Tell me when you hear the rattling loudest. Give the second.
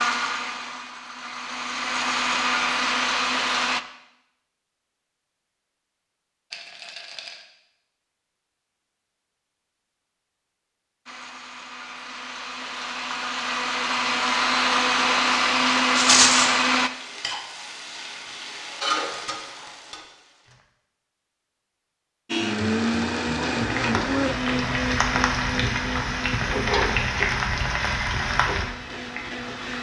16 s.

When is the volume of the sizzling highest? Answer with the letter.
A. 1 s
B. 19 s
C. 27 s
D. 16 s
C.